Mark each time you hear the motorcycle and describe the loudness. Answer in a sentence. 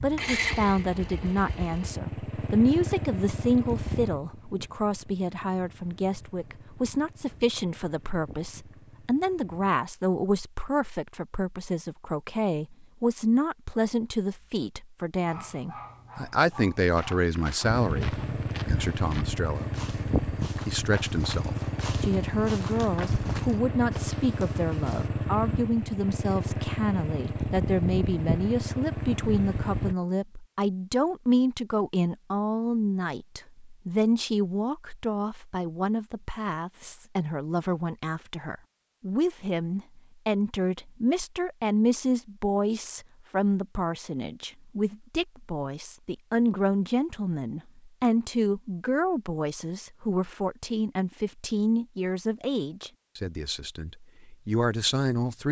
You can hear the motorcycle from 0.0 to 9.7 s, getting quieter; and from 17.6 to 29.9 s, at a steady volume.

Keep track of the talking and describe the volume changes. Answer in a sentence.
The volume of the talking stays about the same.